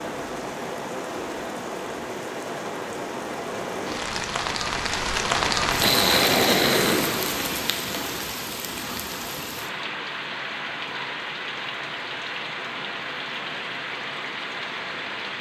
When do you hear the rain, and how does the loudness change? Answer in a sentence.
The rain can be heard from 0.0 to 15.3 s, getting louder then quieter.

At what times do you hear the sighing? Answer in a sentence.
You can hear the sighing from 5.8 to 7.2 s.